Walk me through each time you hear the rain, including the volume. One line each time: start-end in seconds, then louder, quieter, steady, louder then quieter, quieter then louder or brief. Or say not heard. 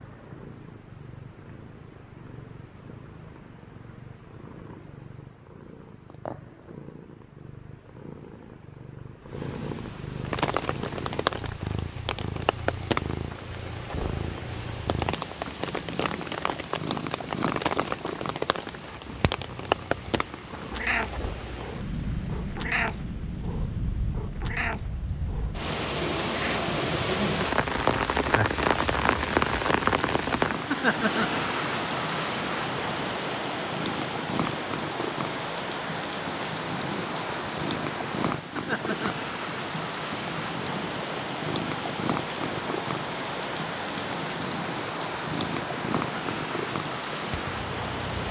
10.2-48.2 louder then quieter.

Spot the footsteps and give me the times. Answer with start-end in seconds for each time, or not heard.
not heard.